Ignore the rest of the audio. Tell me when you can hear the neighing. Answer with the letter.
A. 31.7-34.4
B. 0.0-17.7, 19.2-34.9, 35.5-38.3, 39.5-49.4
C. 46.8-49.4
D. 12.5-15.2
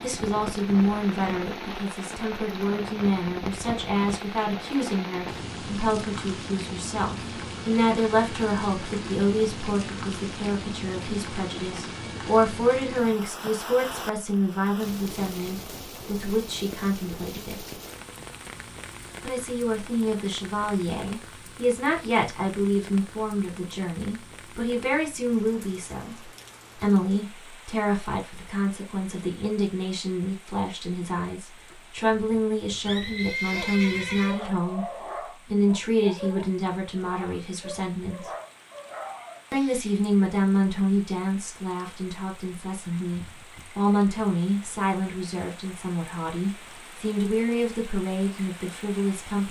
A.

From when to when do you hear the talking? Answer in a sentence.
You can hear the talking from 0.0 to 17.7 s, from 19.2 to 34.9 s, from 35.5 to 38.3 s and from 39.5 to 49.4 s.